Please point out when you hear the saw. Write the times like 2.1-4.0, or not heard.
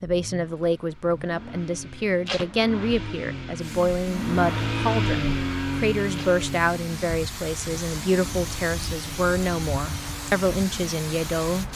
not heard.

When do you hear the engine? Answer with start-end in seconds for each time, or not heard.
0.0-11.7.